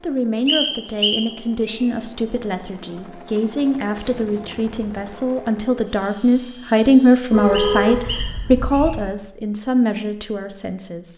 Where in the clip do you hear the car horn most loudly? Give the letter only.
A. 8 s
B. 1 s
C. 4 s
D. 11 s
A.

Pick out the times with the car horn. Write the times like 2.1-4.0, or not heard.
7.3-9.1.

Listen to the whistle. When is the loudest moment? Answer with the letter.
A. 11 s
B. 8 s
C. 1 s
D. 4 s
C.